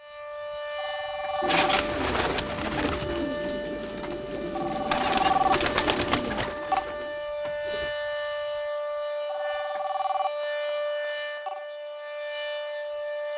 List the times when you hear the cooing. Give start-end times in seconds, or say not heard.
1.4-7.9.